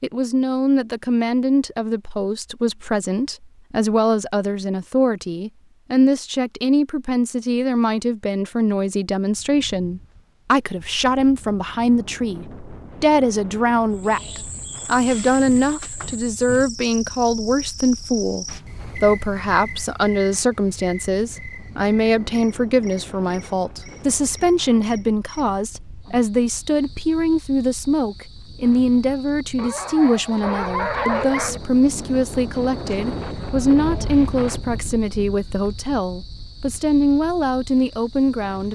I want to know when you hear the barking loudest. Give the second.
31 s.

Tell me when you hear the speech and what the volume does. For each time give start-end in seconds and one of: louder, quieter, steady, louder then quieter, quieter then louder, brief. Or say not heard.
0.0-38.7 steady.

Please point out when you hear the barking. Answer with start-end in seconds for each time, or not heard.
29.6-31.6.